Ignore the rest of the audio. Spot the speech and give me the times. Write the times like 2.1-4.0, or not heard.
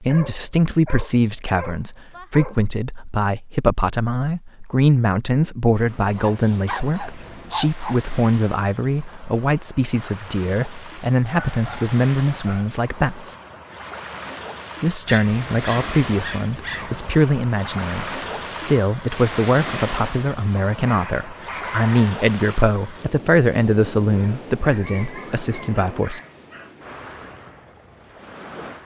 0.0-13.3, 14.8-26.2.